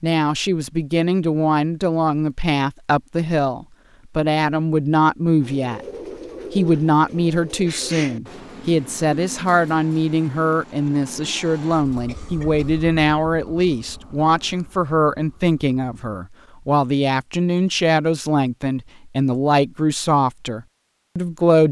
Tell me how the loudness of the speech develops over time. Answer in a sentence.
The loudness of the speech stays about the same.